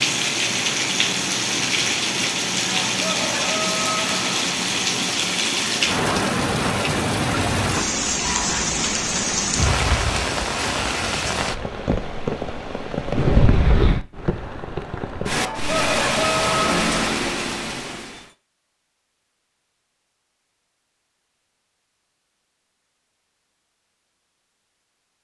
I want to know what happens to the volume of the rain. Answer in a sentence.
The loudness of the rain stays about the same.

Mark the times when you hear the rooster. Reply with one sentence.
The rooster can be heard from 2.6 to 4.5 s and from 15.3 to 17.1 s.